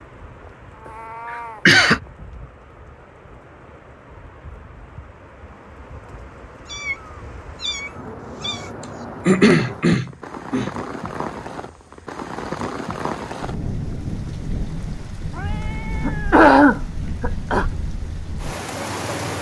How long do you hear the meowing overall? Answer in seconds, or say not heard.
4 s.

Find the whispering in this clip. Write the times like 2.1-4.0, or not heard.
not heard.